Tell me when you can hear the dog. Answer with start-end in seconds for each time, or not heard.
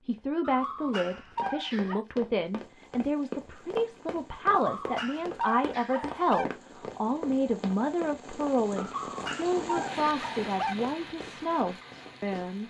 0.4-2.0, 4.5-6.5, 8.8-10.8.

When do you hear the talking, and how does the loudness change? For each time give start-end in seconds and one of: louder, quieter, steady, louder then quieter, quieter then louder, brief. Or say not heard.
0.1-12.6 steady.